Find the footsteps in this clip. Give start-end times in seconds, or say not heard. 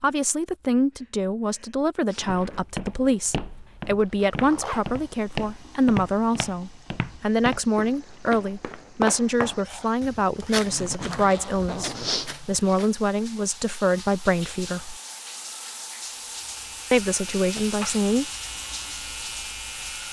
2.5-12.9.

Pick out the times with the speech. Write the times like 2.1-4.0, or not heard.
0.0-14.9, 16.9-18.2.